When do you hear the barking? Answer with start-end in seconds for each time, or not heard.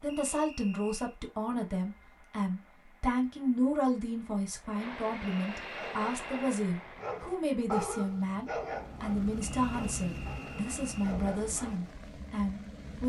5.7-11.9.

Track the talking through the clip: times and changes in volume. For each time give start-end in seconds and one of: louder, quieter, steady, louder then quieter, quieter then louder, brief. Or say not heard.
0.0-13.0 steady.